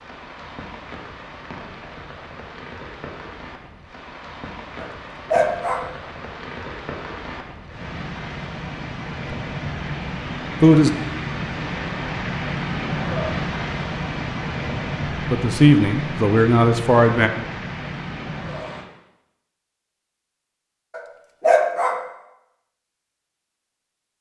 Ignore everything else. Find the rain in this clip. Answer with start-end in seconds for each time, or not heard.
0.0-18.9.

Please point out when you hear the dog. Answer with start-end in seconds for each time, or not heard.
4.8-6.0, 20.9-22.1.